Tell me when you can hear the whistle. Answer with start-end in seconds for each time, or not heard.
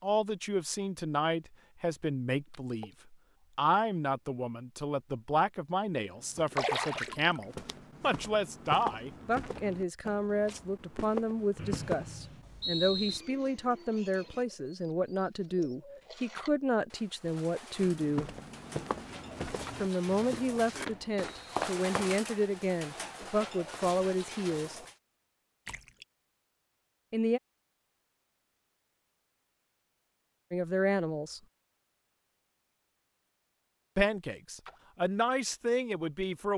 11.6-13.2, 20.1-21.6.